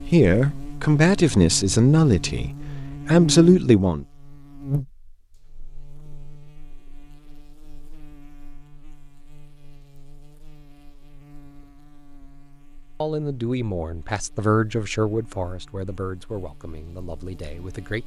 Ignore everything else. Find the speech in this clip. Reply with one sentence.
The speech can be heard from 0.1 to 4.0 s and from 13.0 to 18.0 s.